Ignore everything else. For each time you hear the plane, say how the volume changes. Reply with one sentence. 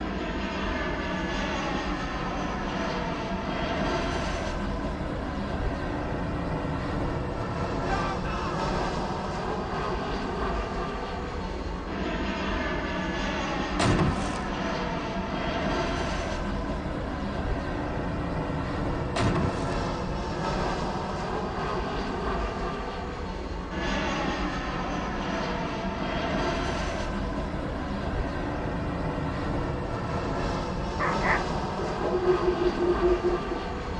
You can hear the plane from 0.0 to 33.9 s, at a steady volume.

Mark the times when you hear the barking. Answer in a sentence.
You can hear the barking from 30.9 to 33.5 s.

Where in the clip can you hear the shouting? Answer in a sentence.
You can hear the shouting from 7.8 to 8.7 s.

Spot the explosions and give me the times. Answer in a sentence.
The explosions can be heard from 13.8 to 14.5 s and from 19.1 to 19.9 s.